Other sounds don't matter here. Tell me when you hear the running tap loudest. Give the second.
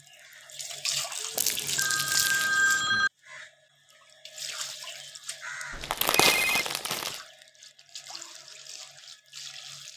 2 s.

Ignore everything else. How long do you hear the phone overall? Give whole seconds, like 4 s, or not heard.
3 s.